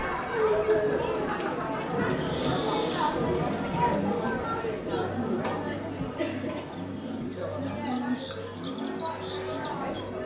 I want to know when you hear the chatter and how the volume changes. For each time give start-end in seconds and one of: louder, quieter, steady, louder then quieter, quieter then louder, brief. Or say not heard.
0.0-10.2 quieter.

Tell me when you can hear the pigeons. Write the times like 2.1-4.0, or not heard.
1.9-10.1.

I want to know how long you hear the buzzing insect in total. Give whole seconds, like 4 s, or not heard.
not heard.